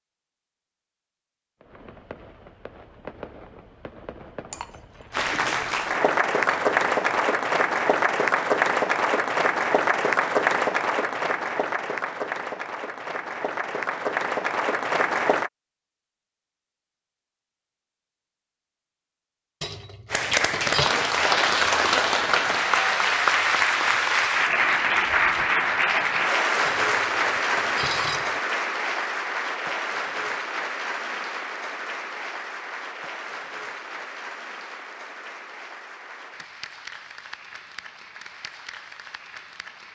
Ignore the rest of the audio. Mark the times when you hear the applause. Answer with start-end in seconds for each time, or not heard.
5.1-15.5, 20.1-39.9.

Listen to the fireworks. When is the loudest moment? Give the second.
3 s.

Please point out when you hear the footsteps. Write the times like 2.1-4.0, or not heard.
not heard.